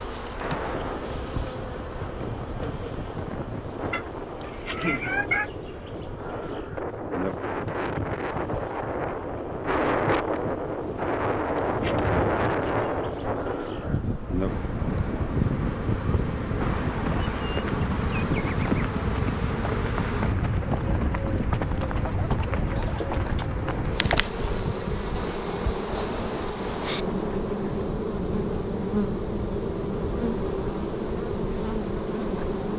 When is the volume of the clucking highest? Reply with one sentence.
The loudest moment of the clucking is at 5 seconds.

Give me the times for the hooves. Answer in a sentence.
The hooves can be heard from 15.3 to 24.9 s.